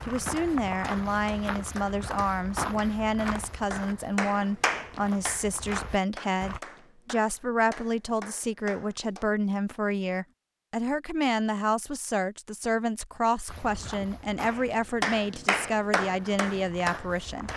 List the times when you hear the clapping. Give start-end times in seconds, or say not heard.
0.1-9.3, 14.4-17.5.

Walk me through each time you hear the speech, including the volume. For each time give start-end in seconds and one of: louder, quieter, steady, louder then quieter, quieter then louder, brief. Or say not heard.
0.1-17.5 steady.